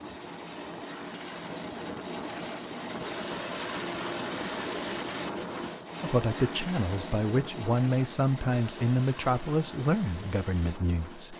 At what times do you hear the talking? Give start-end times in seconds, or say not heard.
6.0-11.3.